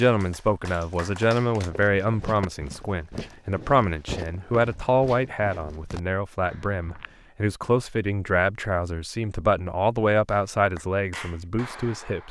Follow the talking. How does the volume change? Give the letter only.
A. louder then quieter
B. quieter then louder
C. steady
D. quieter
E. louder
C.